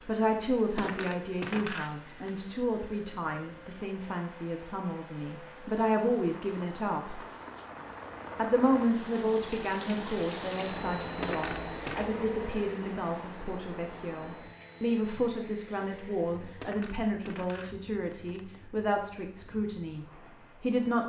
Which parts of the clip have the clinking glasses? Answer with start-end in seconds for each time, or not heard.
0.6-2.3, 11.0-12.1, 16.4-18.6.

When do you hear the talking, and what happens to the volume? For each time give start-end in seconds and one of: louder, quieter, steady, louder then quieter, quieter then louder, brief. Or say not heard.
0.1-7.2 quieter then louder
8.3-21.0 steady.